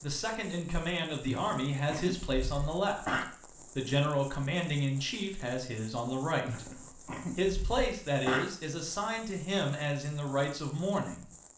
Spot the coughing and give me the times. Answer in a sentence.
The coughing can be heard from 1.2 to 3.2 s and from 6.5 to 8.4 s.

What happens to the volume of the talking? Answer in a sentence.
The volume of the talking stays about the same.